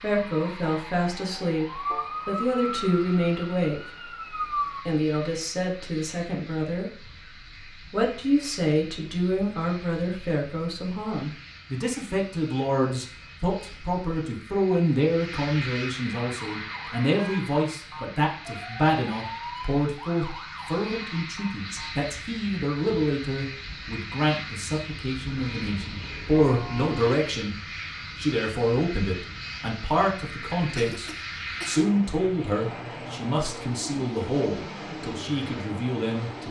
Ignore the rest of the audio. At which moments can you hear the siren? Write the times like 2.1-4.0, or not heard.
0.0-4.8, 16.1-22.1.